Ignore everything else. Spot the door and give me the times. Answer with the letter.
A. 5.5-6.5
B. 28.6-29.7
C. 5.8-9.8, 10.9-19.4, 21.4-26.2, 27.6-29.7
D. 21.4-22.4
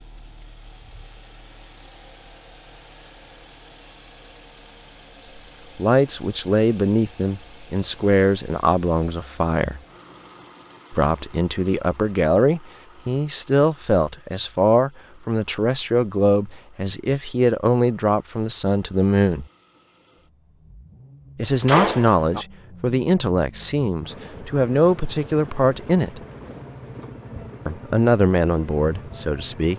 D.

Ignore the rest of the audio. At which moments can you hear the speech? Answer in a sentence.
The speech can be heard from 5.8 to 9.8 s, from 10.9 to 19.4 s, from 21.4 to 26.2 s and from 27.6 to 29.7 s.